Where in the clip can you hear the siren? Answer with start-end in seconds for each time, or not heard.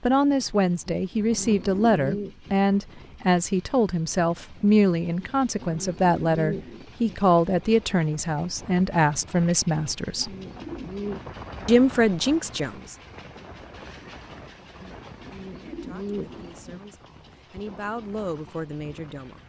not heard.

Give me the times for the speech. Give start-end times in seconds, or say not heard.
0.0-10.3, 11.7-12.9, 15.6-19.4.